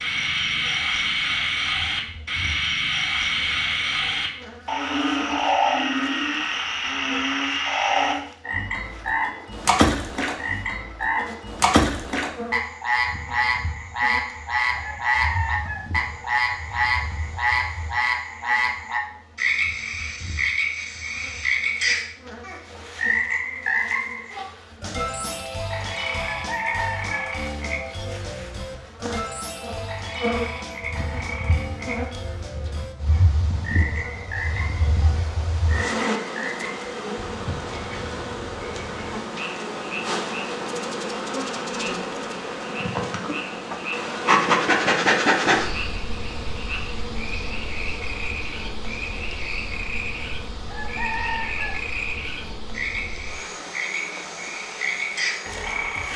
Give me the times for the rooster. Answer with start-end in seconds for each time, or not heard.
14.8-15.9, 26.1-27.4, 50.6-51.8.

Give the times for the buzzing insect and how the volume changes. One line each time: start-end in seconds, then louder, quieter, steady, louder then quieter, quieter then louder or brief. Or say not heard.
0.0-56.1 louder.